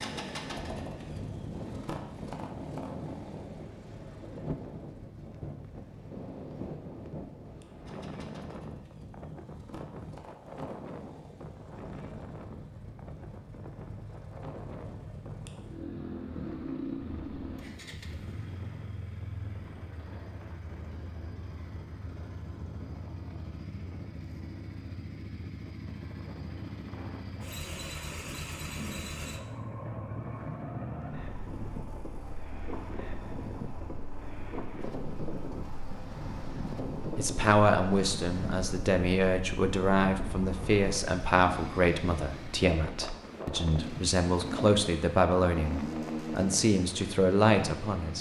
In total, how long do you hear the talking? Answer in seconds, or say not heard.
11 s.